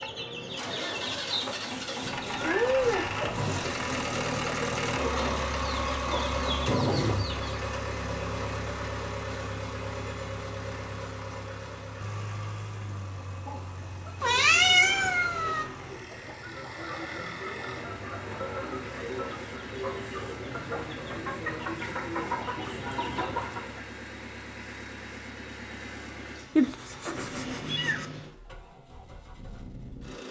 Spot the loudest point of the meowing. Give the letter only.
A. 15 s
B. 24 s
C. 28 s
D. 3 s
A.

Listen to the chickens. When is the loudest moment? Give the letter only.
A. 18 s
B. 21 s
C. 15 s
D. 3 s
D.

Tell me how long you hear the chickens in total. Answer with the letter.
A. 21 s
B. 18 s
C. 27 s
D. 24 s
B.